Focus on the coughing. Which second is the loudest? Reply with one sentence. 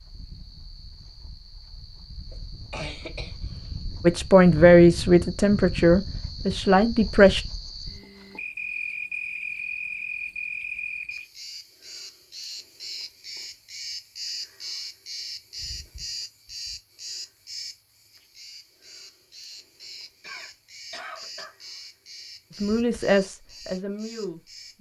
The loudest moment of the coughing is at 3 seconds.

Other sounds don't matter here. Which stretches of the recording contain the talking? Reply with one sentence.
You can hear the talking from 4.0 to 7.4 s and from 22.5 to 24.7 s.